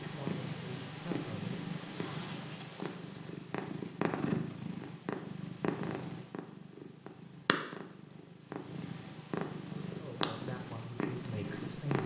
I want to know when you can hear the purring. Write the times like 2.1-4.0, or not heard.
0.0-12.0.